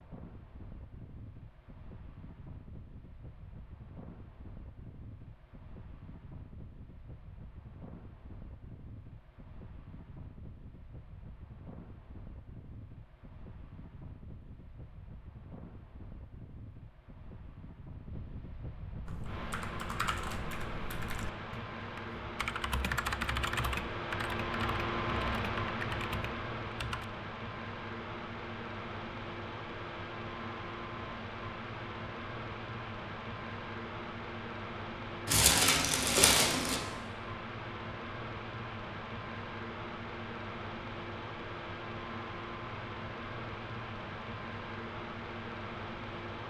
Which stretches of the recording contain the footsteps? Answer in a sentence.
You can't hear the footsteps here.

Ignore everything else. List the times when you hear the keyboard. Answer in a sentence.
The keyboard can be heard from 19.1 to 27.1 s.